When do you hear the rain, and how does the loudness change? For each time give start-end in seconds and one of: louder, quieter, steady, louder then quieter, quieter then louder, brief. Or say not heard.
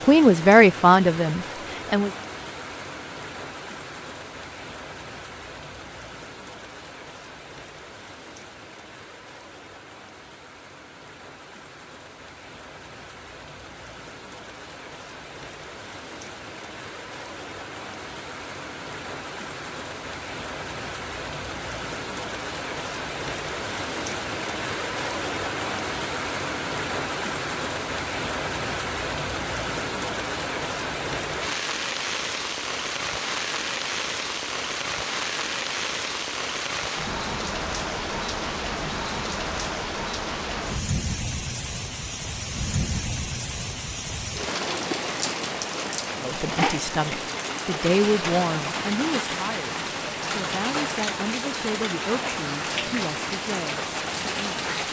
0.0-54.8 louder.